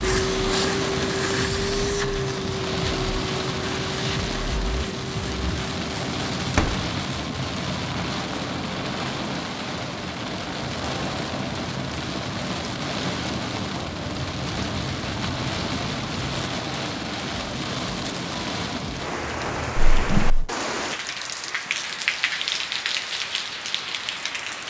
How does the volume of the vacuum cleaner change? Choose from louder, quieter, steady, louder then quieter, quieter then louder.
quieter.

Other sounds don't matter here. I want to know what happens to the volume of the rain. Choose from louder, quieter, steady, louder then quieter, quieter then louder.
steady.